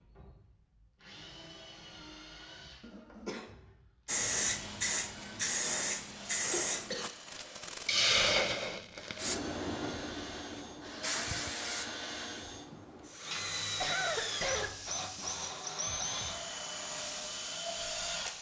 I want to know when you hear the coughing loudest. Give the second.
14 s.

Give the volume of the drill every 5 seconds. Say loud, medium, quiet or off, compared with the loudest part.
quiet, medium, loud, loud.